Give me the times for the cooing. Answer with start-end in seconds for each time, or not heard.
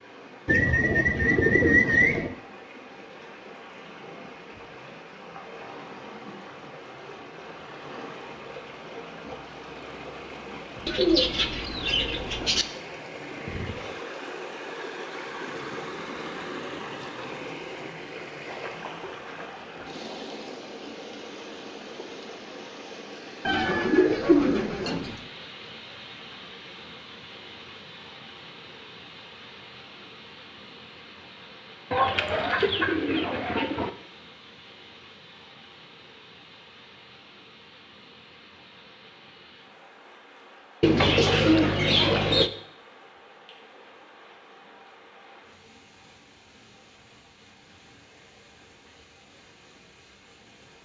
0.5-2.4, 10.8-12.7, 23.4-25.2, 31.9-33.9, 40.8-42.5.